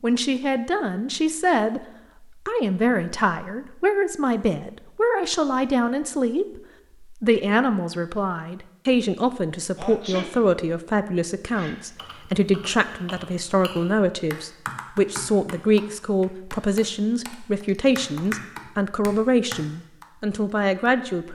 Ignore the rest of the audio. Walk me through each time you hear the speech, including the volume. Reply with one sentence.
The speech can be heard from 0.0 to 21.2 s, at a steady volume.